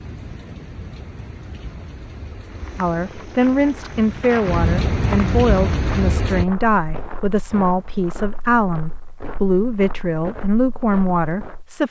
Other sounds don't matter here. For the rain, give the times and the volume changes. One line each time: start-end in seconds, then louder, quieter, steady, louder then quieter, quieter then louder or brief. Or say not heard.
0.0-6.5 louder.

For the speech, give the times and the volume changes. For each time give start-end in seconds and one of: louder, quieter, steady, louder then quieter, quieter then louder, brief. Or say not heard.
2.8-11.8 steady.